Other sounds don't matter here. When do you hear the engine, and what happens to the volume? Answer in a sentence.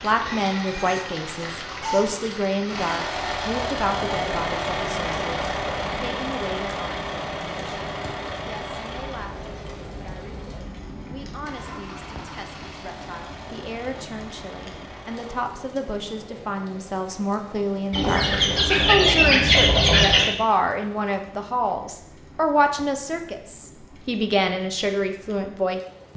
You can hear the engine from 2.6 to 15.4 s, getting quieter.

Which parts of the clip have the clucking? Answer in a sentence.
The clucking can be heard from 0.2 to 2.2 s and from 17.9 to 20.3 s.